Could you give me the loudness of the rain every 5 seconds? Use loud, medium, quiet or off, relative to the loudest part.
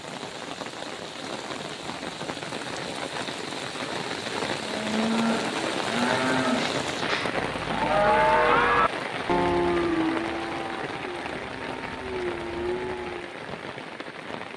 loud, loud, medium.